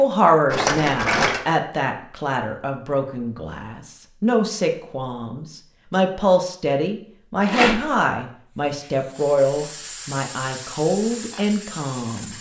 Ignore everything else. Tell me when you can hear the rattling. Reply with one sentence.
The rattling can be heard from 0.5 to 1.4 s and from 7.5 to 7.9 s.